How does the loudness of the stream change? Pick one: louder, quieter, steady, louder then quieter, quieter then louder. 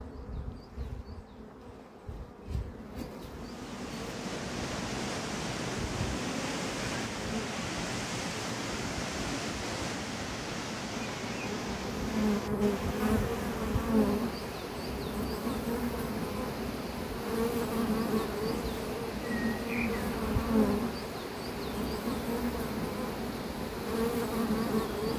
quieter.